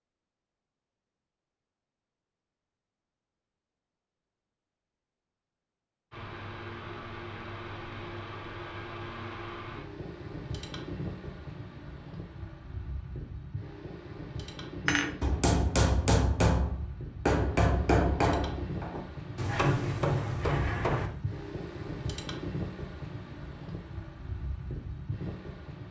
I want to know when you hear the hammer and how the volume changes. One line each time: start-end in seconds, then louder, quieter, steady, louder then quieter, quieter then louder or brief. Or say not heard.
14.8-21.1 quieter then louder.